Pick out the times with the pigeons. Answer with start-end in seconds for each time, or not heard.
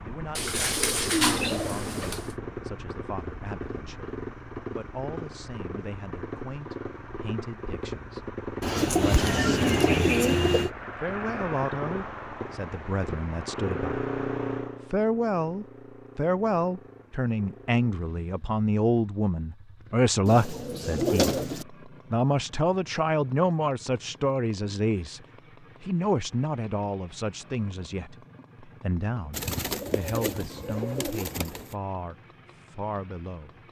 0.3-2.4, 8.6-10.7, 20.2-21.6, 29.3-31.8.